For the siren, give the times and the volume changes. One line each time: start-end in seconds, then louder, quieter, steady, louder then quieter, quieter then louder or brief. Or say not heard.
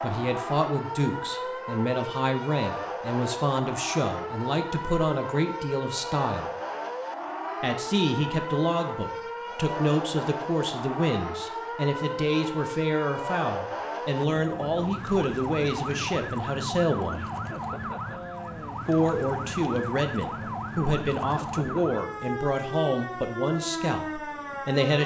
0.0-25.0 steady.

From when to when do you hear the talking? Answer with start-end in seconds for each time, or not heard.
0.0-6.5, 7.6-17.2, 18.9-25.0.